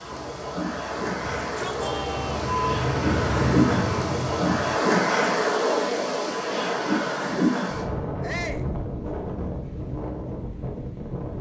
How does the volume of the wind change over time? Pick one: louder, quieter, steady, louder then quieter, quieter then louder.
louder then quieter.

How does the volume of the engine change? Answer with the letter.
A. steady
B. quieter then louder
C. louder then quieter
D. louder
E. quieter
D.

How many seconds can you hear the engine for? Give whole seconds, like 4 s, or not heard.
5 s.